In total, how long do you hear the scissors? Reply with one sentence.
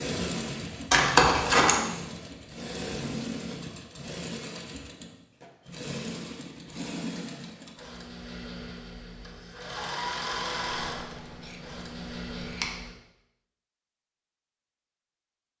The scissors can be heard for 3 seconds in total.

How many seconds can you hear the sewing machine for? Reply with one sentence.
You can hear the sewing machine for 13 seconds altogether.